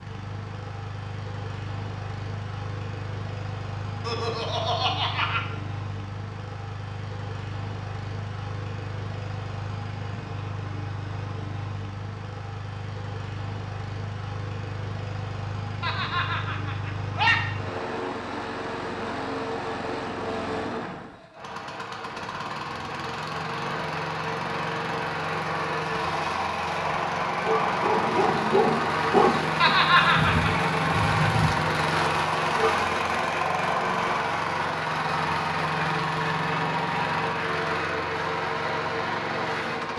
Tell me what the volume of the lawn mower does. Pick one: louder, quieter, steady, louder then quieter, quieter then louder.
louder.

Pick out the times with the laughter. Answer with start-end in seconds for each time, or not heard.
4.0-5.4, 15.8-17.4, 29.6-30.5.